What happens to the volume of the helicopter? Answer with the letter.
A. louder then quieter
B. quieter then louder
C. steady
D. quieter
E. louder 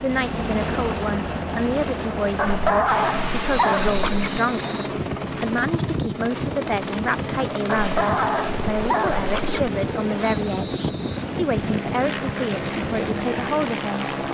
C.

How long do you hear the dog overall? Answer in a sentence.
The dog can be heard for 4 seconds in total.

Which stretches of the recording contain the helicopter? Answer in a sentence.
The helicopter can be heard from 0.0 to 14.2 s.